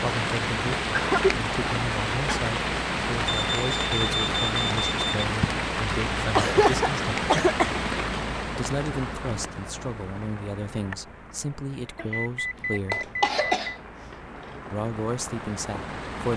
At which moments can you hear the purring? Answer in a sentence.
The purring can't be heard in this clip.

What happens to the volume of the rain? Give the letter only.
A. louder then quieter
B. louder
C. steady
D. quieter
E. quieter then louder
D.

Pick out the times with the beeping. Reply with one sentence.
The beeping can be heard from 3.2 to 5.2 s and from 11.9 to 13.6 s.